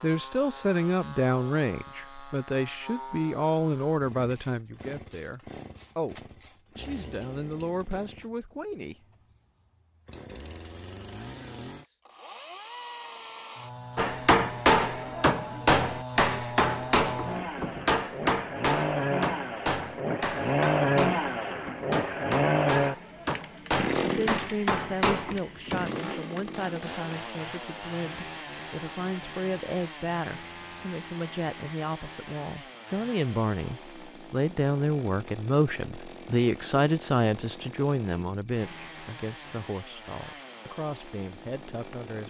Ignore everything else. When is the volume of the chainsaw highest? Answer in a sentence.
The loudest moment of the chainsaw is at 21 seconds.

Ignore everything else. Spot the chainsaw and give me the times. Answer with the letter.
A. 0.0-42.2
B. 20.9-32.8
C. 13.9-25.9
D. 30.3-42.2
A.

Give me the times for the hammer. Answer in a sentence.
The hammer can be heard from 13.9 to 25.9 s.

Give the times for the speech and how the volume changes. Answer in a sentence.
The speech can be heard from 0.0 to 8.9 s, getting quieter; and from 24.0 to 42.2 s, getting louder then quieter.